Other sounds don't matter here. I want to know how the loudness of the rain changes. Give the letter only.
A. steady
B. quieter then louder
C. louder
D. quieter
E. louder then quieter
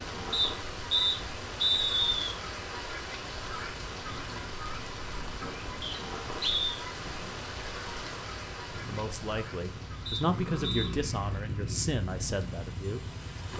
D.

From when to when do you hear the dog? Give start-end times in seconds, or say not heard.
not heard.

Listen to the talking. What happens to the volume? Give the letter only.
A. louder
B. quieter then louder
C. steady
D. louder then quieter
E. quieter
D.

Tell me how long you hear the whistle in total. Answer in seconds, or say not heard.
4 s.